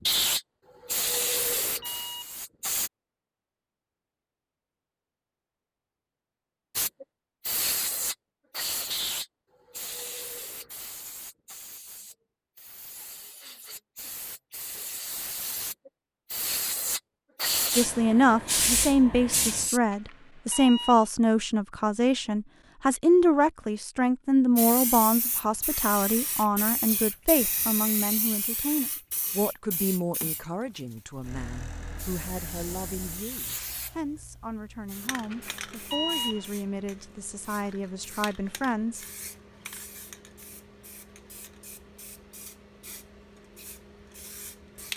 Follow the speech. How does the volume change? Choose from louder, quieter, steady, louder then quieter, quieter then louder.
quieter.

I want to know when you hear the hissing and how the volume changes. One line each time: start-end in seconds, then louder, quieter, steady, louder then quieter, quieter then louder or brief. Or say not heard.
0.0-2.9 brief
6.8-19.8 quieter then louder
24.6-44.9 quieter.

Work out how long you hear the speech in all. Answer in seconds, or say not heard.
21 s.